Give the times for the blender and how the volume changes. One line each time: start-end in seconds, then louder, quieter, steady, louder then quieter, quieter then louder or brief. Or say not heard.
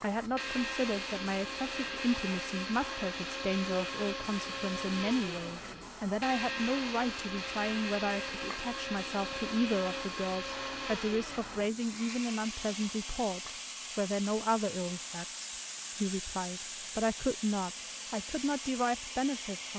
0.2-19.7 quieter.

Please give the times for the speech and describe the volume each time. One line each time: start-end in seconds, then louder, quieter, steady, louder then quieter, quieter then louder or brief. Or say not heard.
0.0-19.7 steady.